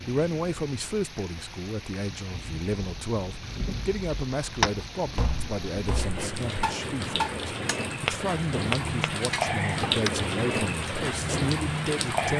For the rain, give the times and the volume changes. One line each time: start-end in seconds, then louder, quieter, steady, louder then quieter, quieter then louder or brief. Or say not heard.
0.0-12.3 louder.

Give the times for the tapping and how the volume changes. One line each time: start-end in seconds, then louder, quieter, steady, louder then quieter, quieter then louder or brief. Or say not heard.
4.6-10.2 louder then quieter.